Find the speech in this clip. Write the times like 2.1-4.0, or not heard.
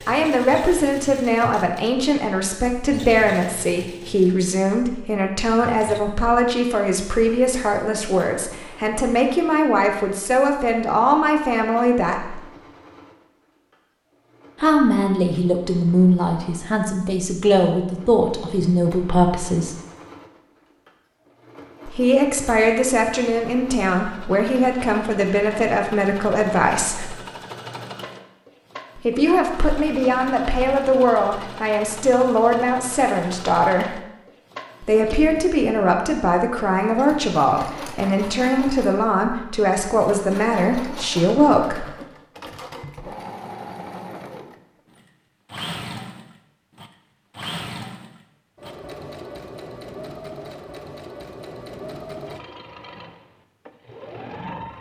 0.1-12.4, 14.6-19.8, 21.9-27.1, 28.9-34.0, 34.8-41.9.